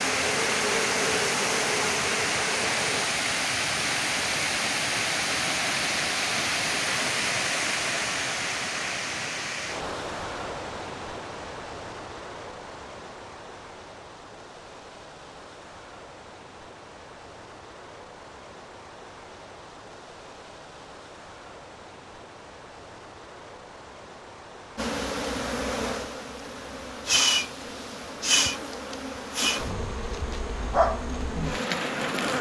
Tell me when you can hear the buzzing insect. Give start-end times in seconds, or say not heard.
0.0-3.1, 24.8-32.3.